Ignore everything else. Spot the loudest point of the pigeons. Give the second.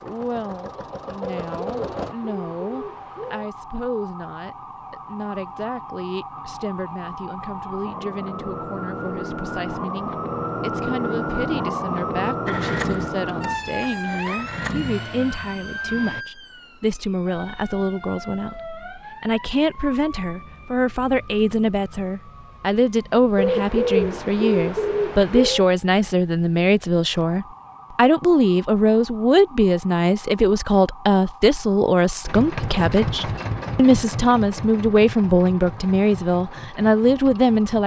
24 s.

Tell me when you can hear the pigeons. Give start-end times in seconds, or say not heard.
1.2-3.5, 23.4-25.6.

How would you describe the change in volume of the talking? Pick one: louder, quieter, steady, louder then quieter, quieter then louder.
louder.